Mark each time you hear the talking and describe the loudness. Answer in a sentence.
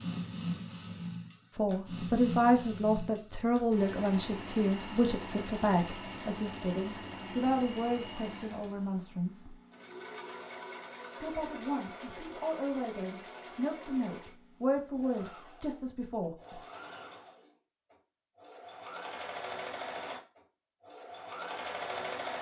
You can hear the talking from 1.6 to 9.6 s, getting quieter; and from 11.2 to 16.6 s, getting louder then quieter.